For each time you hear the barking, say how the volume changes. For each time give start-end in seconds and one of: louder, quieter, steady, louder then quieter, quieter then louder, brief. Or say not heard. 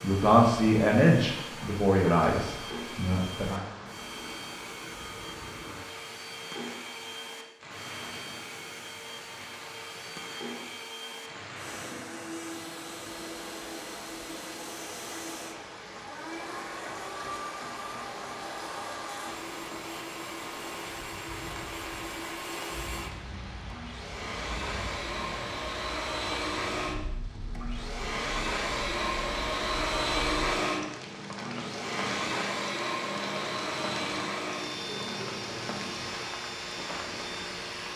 not heard.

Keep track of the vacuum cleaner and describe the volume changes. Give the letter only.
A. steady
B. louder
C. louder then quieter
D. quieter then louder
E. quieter
B.